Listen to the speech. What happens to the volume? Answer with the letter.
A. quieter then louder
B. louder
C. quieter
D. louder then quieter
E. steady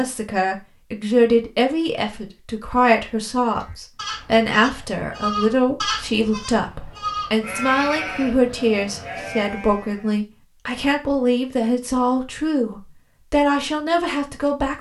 E.